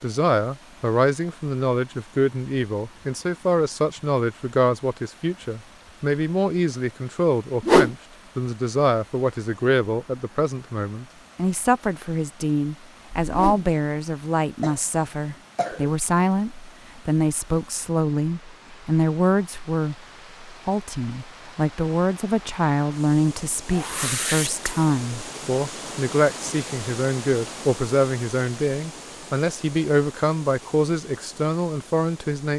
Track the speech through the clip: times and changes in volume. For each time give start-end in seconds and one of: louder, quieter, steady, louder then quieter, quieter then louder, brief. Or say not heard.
0.0-32.5 steady.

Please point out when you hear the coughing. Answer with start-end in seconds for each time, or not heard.
14.6-15.9.